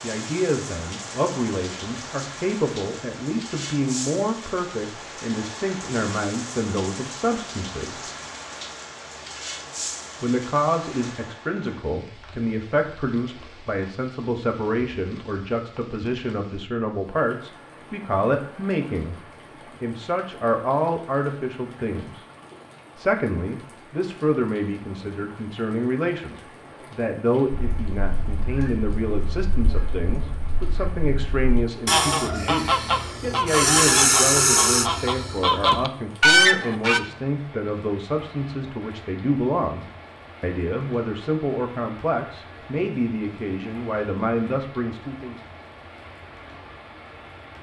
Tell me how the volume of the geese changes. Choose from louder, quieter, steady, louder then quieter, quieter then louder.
louder.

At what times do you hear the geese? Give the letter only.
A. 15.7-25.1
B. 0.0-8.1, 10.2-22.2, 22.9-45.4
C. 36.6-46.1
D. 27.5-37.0
D.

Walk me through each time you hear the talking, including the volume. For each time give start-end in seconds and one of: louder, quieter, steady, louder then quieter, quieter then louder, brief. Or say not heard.
0.0-8.1 steady
10.2-22.2 steady
22.9-45.4 steady.